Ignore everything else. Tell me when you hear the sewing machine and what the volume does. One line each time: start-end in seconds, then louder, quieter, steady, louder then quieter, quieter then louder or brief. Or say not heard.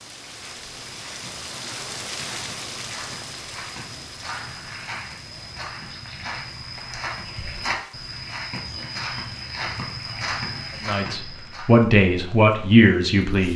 not heard.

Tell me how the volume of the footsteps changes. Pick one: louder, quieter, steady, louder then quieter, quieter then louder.
louder.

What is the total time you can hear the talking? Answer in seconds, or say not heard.
3 s.